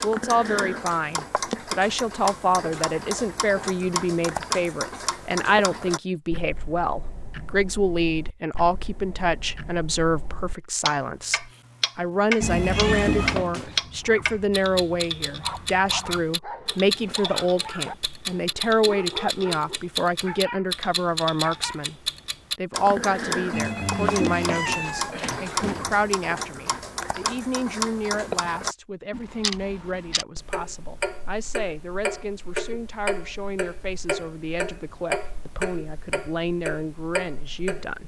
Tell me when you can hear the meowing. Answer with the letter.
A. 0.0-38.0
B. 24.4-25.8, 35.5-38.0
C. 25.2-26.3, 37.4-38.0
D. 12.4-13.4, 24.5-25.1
D.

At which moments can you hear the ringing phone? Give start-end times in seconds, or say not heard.
12.4-13.8, 23.5-26.0.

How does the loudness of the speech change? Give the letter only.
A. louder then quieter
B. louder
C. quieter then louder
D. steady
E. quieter
E.